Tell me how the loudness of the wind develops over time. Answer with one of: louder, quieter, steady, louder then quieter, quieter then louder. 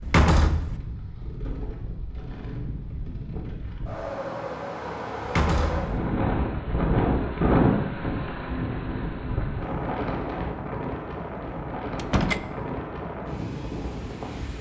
louder then quieter.